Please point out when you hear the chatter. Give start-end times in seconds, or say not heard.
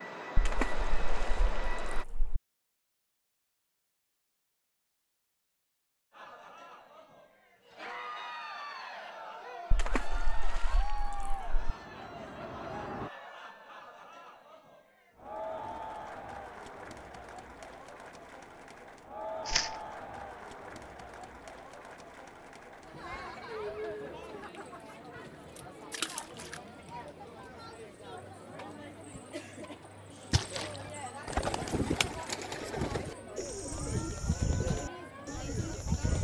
6.1-36.1.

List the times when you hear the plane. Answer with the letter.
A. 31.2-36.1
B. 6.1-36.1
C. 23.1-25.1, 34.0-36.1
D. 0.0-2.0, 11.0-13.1
D.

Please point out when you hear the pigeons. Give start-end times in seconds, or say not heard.
31.2-36.1.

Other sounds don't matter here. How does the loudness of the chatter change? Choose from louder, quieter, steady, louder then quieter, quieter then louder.
steady.